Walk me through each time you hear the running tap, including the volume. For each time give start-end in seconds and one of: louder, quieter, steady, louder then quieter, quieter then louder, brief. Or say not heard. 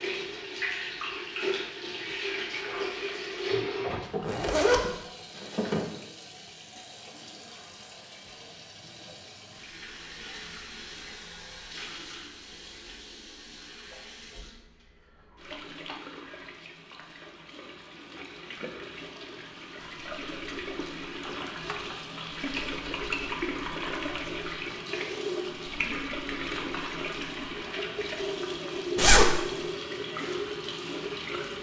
0.0-31.5 quieter then louder.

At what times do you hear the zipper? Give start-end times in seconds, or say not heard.
4.2-4.8, 28.9-29.4.